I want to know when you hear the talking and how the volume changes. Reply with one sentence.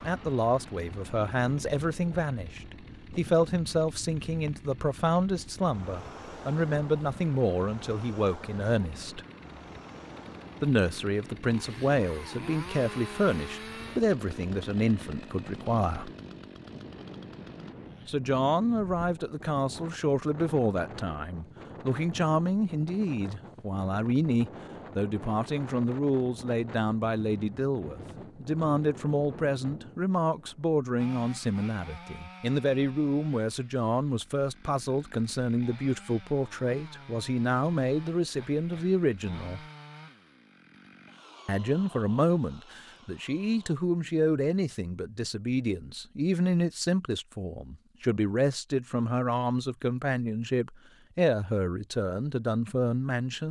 The talking can be heard from 0.0 to 9.2 s, at a steady volume; from 10.6 to 16.1 s, at a steady volume; from 18.1 to 39.6 s, at a steady volume; and from 41.5 to 53.4 s, at a steady volume.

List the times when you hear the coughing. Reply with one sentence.
You can't hear the coughing here.